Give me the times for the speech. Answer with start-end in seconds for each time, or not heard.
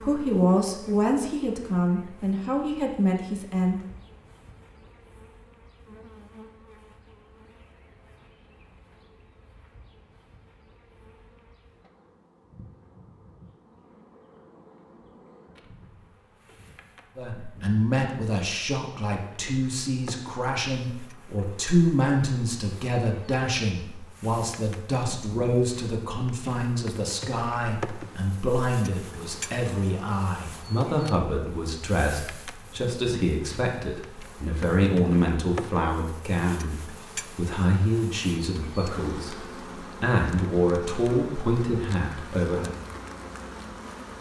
0.0-3.9, 17.1-42.8.